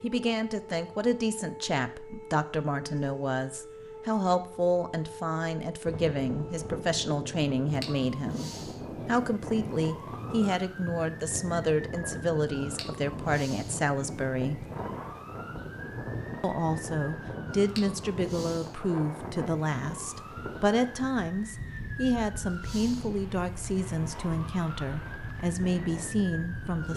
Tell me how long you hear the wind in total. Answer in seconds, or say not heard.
21 s.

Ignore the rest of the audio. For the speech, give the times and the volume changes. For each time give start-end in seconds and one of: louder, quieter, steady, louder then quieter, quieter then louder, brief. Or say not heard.
0.0-14.7 steady
16.4-26.9 steady.